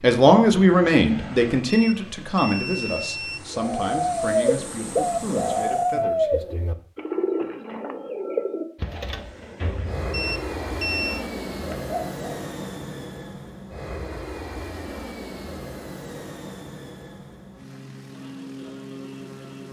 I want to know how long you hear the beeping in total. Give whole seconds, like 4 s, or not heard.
3 s.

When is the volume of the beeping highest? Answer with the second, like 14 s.
11 s.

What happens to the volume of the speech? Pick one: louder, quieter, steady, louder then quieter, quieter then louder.
quieter.